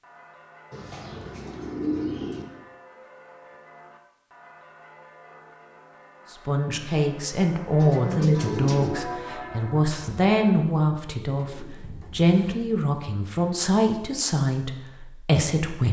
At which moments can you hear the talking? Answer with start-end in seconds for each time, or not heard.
6.3-15.8.